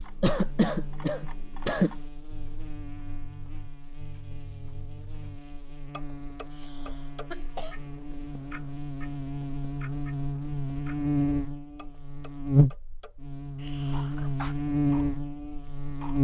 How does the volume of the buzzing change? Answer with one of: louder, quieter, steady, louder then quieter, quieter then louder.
louder.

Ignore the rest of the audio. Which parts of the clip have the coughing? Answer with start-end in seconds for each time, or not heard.
0.2-1.9, 6.5-7.8, 13.6-14.6.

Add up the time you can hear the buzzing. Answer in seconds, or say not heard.
16 s.